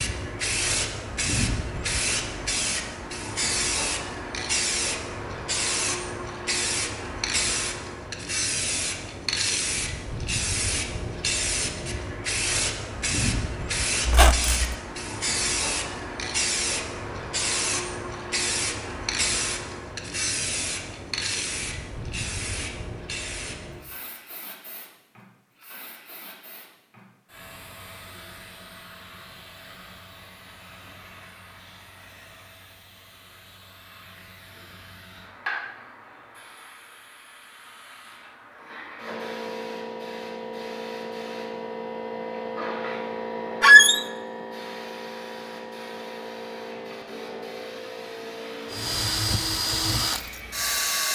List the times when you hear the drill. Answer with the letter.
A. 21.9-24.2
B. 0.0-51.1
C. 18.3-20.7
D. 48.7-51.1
D.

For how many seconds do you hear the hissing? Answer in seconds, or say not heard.
51 s.